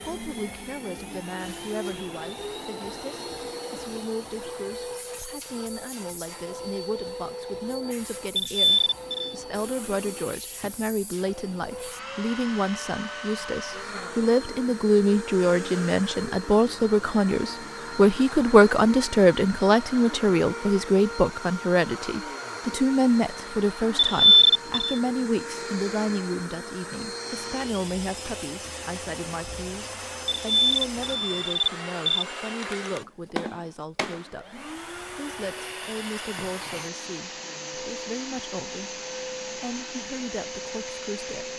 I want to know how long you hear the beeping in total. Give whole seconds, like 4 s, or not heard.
4 s.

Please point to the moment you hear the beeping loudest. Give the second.
24 s.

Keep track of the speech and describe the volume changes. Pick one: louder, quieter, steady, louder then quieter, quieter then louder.
louder then quieter.